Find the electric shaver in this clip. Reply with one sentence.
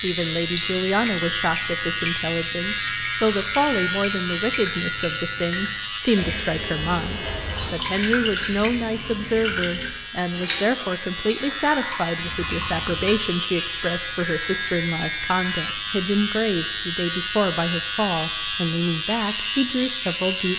The electric shaver can be heard from 0.0 to 20.5 s.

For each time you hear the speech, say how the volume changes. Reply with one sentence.
You can hear the speech from 0.0 to 20.5 s, at a steady volume.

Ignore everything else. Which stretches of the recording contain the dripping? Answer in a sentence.
You can hear the dripping from 0.0 to 13.2 s.